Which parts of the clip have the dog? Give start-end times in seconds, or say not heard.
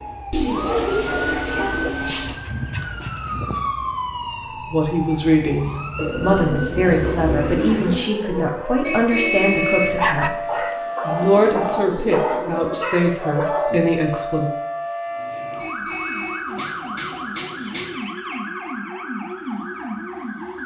0.0-3.6, 9.8-13.8.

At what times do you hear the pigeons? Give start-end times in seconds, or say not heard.
0.3-2.4, 6.0-8.0, 10.6-12.8, 16.4-18.1.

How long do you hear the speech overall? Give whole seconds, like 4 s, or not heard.
10 s.